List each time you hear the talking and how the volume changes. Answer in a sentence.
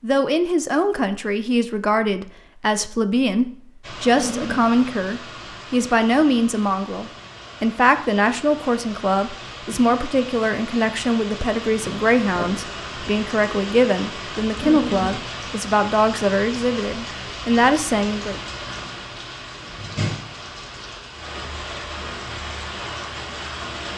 You can hear the talking from 0.0 to 18.4 s, at a steady volume.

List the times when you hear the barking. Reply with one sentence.
You can hear the barking from 4.2 to 4.7 s and from 14.6 to 15.1 s.